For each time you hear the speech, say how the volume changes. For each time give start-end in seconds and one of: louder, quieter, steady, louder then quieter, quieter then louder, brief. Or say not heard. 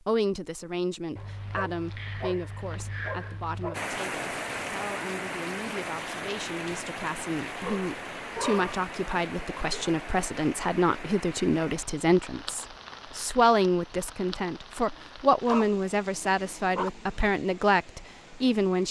0.1-18.8 louder.